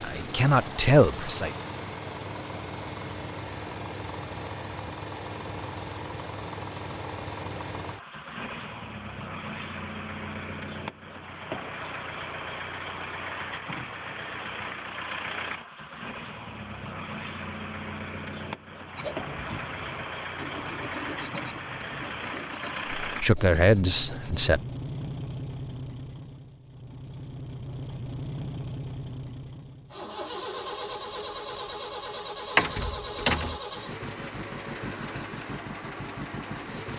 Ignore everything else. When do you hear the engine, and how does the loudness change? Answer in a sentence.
You can hear the engine from 0.0 to 36.9 s, at a steady volume.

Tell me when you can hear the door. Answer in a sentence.
You can hear the door from 32.5 to 33.6 s.